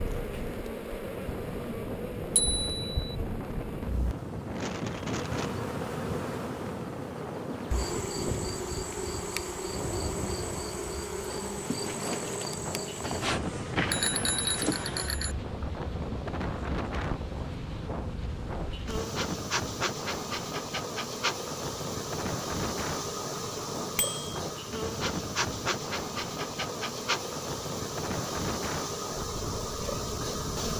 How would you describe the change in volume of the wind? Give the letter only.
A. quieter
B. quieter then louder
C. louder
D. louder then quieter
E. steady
E.